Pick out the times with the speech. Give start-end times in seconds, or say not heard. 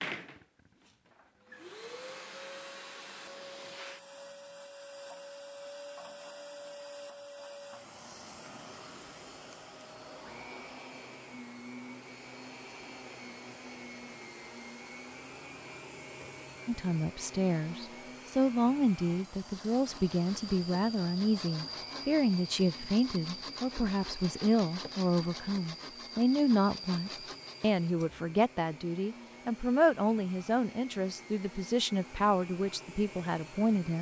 16.6-33.9.